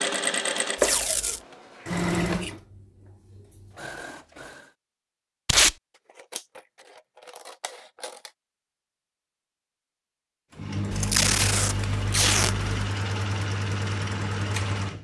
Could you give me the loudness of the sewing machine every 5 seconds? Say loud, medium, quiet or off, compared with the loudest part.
loud, off, loud.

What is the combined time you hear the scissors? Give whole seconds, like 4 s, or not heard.
5 s.